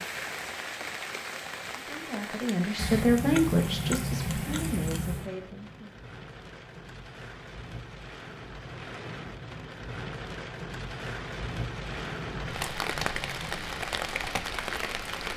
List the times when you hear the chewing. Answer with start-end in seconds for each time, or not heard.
2.8-5.3, 11.9-13.8.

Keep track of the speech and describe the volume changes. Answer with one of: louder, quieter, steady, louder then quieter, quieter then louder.
louder then quieter.